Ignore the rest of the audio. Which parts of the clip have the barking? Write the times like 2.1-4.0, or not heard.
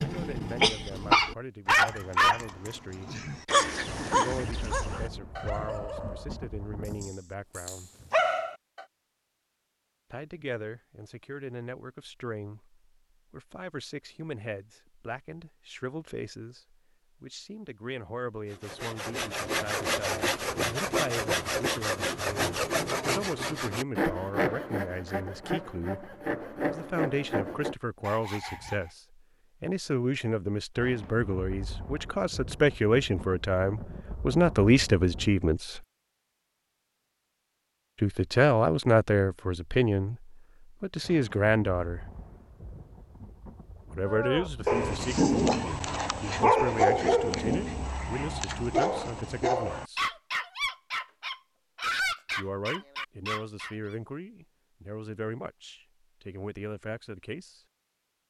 0.0-8.8, 44.0-54.0.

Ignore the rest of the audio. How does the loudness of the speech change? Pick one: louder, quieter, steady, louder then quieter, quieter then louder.
louder then quieter.